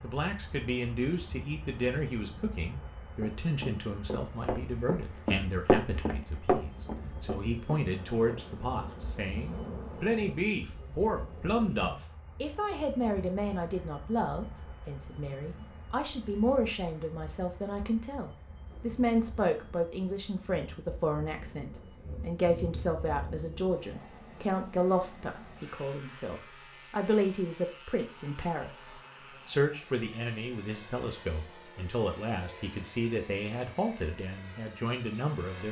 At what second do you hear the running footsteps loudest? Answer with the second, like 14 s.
6 s.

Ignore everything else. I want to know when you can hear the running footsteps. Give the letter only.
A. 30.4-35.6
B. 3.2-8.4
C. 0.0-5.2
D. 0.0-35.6
B.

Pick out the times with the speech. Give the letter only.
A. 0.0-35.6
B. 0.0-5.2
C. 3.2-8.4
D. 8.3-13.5
A.